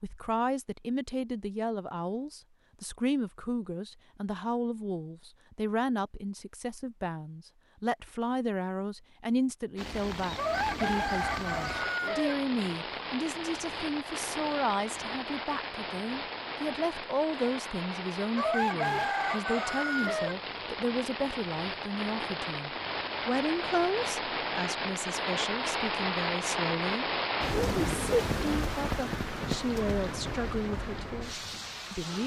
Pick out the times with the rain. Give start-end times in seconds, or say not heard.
9.8-32.2.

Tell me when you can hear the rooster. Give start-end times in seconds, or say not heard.
10.3-12.3, 18.4-20.4.